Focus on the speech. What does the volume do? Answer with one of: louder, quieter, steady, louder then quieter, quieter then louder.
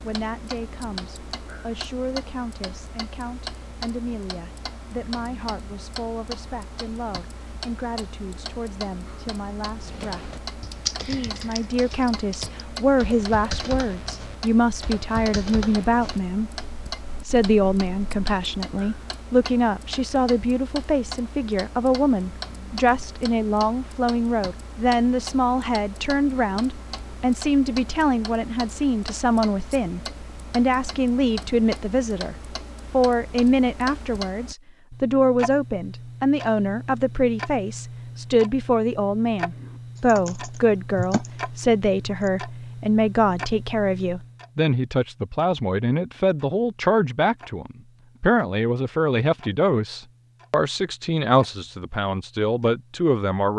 louder.